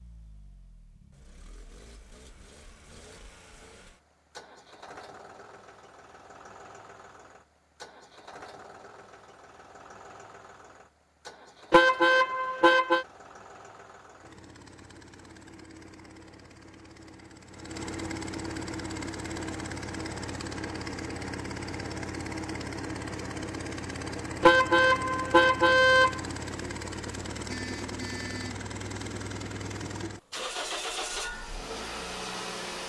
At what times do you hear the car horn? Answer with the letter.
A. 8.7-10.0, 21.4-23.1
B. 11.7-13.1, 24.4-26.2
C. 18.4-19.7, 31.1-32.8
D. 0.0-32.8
B.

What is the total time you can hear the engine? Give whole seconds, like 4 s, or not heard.
33 s.